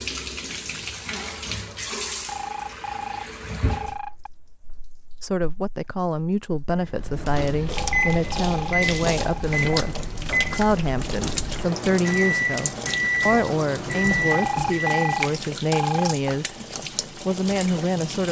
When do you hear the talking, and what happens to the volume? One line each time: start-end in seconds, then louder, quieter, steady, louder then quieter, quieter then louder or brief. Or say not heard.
5.2-18.2 steady.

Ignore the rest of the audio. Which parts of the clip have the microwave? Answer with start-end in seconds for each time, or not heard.
6.8-15.1.